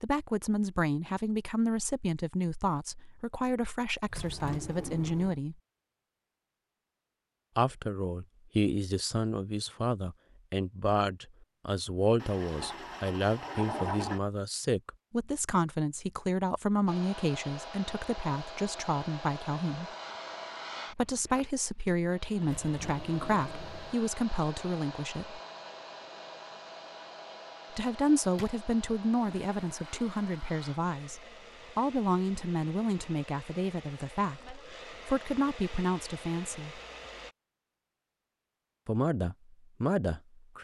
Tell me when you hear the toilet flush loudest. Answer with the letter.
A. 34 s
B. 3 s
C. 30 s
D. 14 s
D.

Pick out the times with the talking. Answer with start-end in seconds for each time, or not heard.
0.0-5.5, 7.5-19.9, 20.9-25.4, 27.7-36.8, 38.9-40.5.